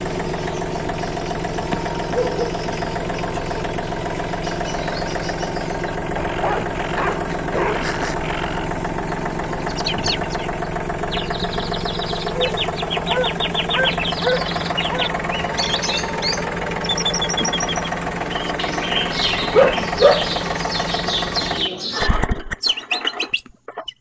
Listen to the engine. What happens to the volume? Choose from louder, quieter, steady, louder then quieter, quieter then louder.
steady.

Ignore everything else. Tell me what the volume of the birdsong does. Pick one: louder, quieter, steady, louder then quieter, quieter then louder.
louder.